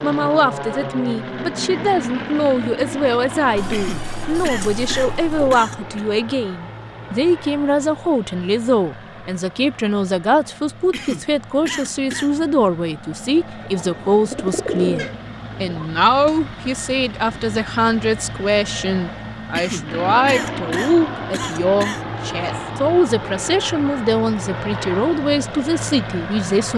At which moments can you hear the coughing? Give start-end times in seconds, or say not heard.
3.7-6.0, 10.9-12.3, 19.6-22.0.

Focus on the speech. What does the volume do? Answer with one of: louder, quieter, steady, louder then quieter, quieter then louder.
steady.